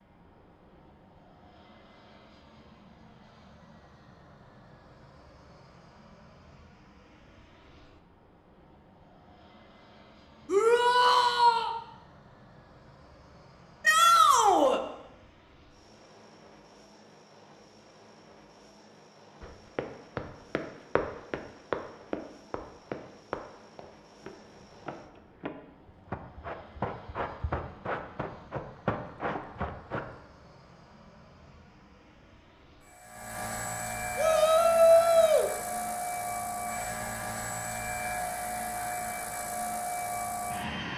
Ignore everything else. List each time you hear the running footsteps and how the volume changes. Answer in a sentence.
You can hear the running footsteps from 19.4 to 30.2 s, getting quieter then louder.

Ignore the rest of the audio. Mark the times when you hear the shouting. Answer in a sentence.
You can hear the shouting from 10.4 to 11.7 s, from 13.8 to 14.8 s and from 34.1 to 35.5 s.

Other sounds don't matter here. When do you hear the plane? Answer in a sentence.
The plane can be heard from 0.0 to 40.9 s.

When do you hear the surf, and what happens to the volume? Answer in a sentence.
You can't hear the surf here.